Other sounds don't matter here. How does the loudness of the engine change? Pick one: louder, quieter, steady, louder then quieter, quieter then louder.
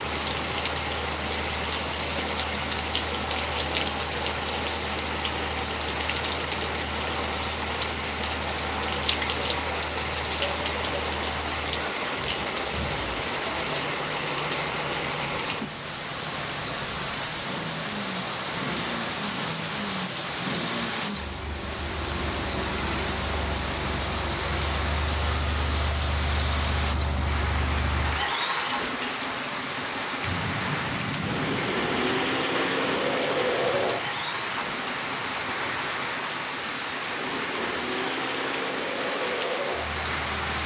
louder.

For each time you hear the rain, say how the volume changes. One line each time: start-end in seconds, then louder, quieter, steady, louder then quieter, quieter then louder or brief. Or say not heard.
0.0-40.6 steady.